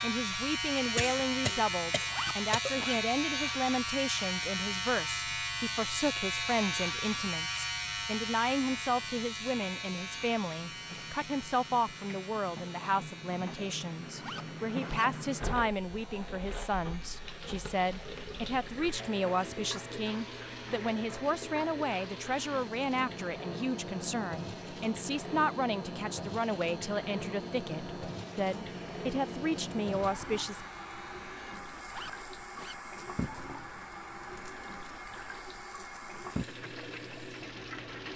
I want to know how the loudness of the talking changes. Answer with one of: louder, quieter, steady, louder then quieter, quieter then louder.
steady.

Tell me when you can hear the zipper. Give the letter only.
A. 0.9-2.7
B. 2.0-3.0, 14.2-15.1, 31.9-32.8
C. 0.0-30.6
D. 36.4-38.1
B.